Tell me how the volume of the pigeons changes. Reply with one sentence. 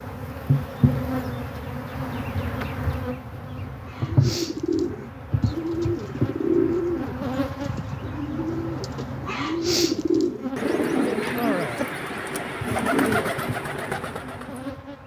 The volume of the pigeons stays about the same.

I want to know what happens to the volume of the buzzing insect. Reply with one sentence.
The loudness of the buzzing insect goes down.